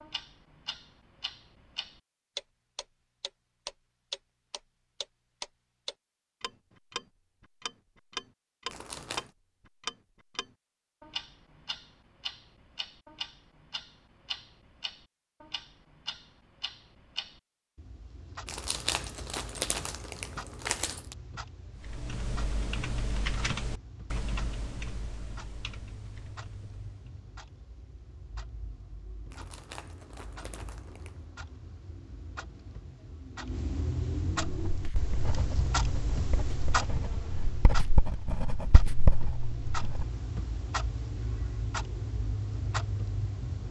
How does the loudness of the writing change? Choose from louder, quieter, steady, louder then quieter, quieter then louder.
louder.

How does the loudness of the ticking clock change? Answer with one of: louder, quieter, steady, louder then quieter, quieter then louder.
quieter then louder.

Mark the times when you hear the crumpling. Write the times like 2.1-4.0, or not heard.
8.7-9.3, 18.4-21.1, 29.3-31.2.